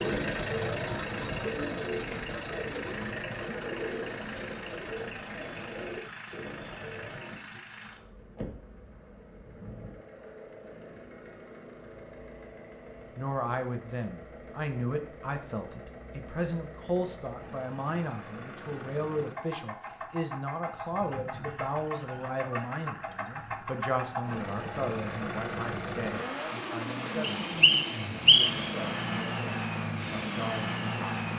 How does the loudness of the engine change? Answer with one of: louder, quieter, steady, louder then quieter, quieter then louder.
quieter then louder.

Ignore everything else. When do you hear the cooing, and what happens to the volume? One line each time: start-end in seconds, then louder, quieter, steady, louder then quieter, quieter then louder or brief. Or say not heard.
0.0-7.4 quieter.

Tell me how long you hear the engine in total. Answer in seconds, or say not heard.
31 s.